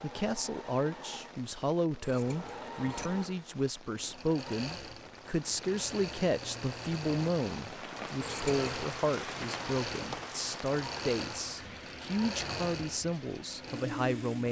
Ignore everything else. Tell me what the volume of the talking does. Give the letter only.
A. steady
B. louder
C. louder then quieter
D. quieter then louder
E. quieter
A.